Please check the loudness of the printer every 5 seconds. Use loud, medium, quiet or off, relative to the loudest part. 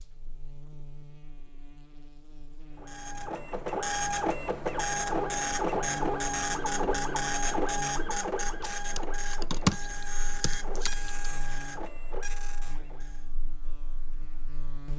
loud, loud, medium.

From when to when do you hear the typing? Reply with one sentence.
The typing can be heard from 8.6 to 11.1 s.